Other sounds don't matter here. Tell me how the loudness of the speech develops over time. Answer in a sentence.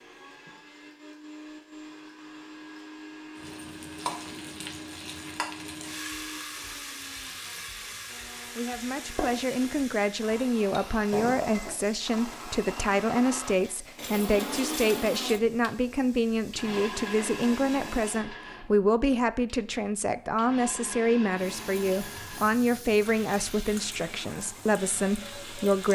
The loudness of the speech stays about the same.